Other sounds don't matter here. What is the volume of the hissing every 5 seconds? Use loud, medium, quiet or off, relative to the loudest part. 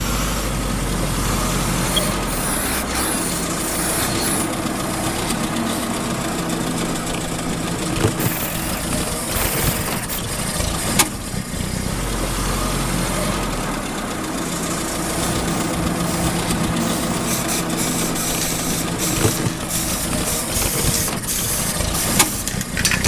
loud, off, off, loud, loud.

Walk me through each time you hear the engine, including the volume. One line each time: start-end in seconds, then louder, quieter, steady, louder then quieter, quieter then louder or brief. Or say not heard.
0.0-23.0 steady.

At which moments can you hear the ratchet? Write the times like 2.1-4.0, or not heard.
8.2-10.2.